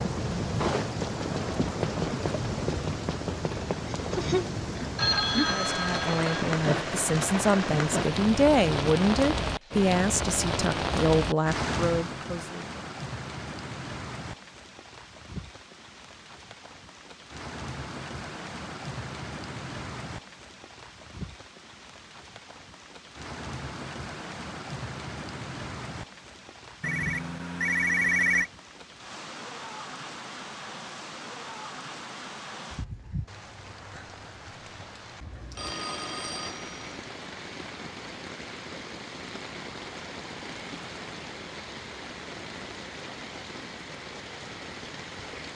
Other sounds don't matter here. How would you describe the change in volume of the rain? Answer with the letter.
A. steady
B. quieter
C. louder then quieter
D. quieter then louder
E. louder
B.